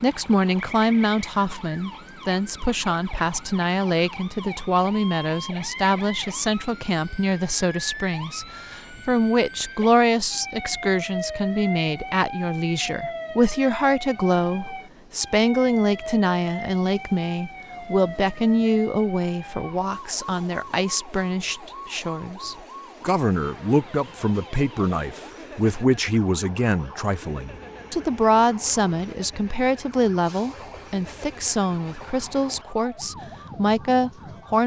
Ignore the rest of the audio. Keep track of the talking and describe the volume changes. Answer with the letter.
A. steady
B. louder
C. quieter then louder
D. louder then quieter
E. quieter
A.